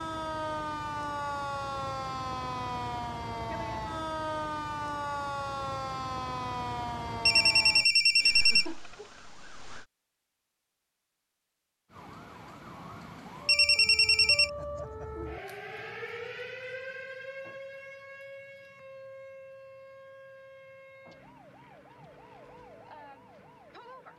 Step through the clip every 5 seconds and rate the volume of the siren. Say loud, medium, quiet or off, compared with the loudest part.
loud, loud, medium, medium, quiet.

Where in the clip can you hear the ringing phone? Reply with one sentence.
The ringing phone can be heard from 7.2 to 8.7 s and from 13.4 to 14.5 s.